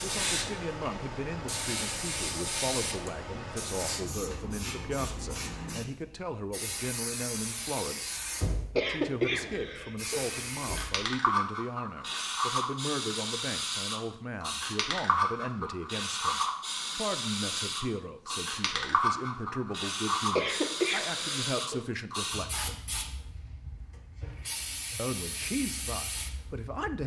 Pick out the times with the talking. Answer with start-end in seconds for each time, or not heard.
0.0-22.8, 24.9-27.0.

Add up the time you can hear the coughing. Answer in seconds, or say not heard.
3 s.